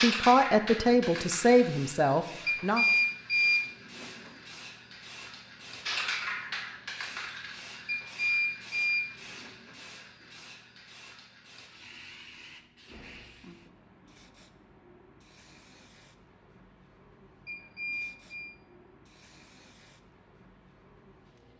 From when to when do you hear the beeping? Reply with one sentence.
The beeping can be heard from 2.5 to 4.3 s, from 7.8 to 9.8 s and from 17.4 to 18.5 s.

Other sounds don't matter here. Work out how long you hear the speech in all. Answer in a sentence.
The speech can be heard for 3 seconds in total.